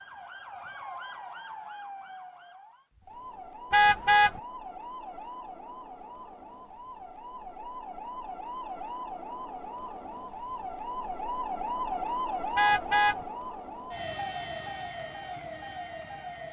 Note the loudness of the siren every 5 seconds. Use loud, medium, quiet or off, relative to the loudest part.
medium, medium, loud, medium.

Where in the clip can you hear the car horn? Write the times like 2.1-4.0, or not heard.
3.7-4.4, 12.6-13.2.